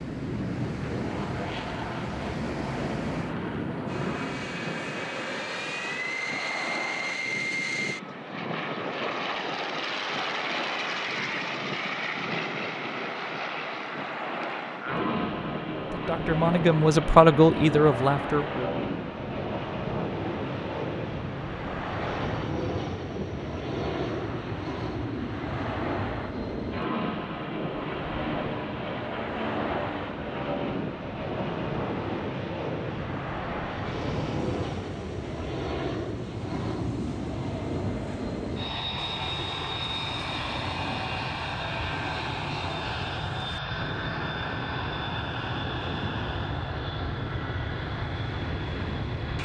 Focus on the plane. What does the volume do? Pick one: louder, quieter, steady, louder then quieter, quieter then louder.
steady.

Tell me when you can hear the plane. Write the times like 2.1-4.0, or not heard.
0.0-49.4.